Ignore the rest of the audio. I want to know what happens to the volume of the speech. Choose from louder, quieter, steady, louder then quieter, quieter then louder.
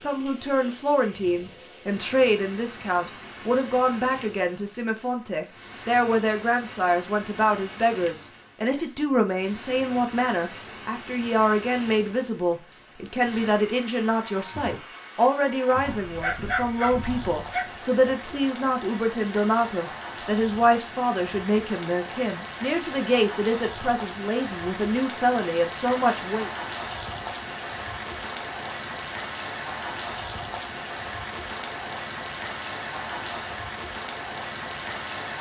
steady.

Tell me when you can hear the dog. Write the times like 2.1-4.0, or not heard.
15.8-17.9.